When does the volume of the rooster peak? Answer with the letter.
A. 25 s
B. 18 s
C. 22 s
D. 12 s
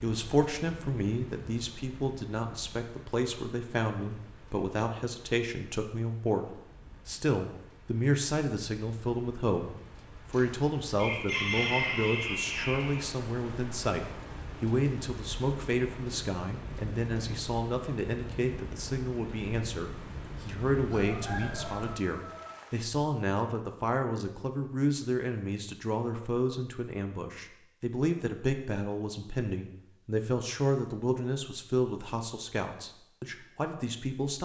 D.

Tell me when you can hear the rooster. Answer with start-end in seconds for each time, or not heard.
10.3-13.1, 20.8-22.5.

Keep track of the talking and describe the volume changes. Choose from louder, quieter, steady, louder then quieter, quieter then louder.
steady.